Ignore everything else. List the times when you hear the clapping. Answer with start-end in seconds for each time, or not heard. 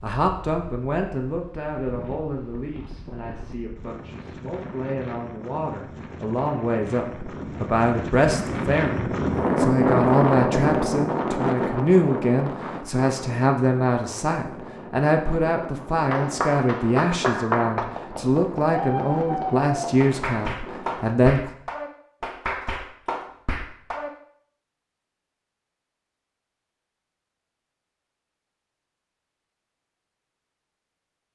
16.1-24.1.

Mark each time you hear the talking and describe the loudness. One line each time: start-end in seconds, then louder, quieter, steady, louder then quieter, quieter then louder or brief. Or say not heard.
0.0-21.5 louder.